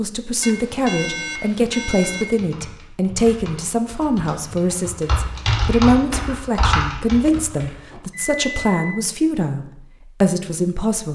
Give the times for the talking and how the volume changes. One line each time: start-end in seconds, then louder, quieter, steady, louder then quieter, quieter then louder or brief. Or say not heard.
0.0-11.1 steady.